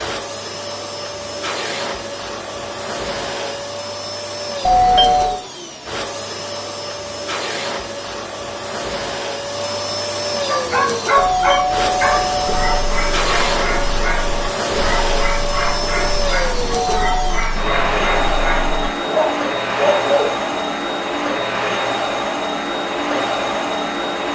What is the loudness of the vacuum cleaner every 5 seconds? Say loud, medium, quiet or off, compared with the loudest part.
medium, medium, loud, loud, loud.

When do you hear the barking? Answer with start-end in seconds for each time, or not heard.
10.4-20.4.